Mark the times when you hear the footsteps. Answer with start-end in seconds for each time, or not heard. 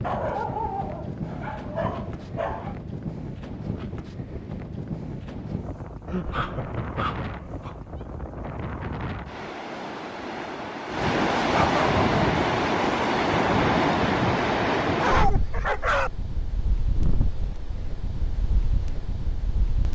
not heard.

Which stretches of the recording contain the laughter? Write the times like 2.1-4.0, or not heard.
6.0-7.9.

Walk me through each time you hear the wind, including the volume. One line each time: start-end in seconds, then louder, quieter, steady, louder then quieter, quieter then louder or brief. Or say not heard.
0.0-19.9 louder then quieter.